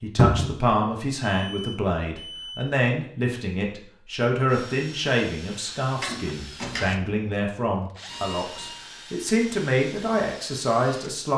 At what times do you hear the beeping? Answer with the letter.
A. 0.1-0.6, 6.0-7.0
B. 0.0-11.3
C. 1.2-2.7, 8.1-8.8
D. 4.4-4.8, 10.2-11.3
C.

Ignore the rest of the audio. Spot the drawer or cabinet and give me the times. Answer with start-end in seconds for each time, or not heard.
0.1-0.6, 6.0-7.0.